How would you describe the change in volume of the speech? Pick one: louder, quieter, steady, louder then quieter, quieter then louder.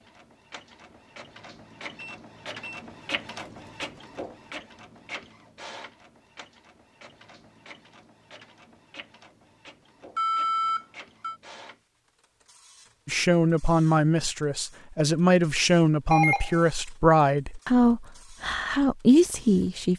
steady.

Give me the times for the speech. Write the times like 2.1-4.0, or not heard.
13.1-19.9.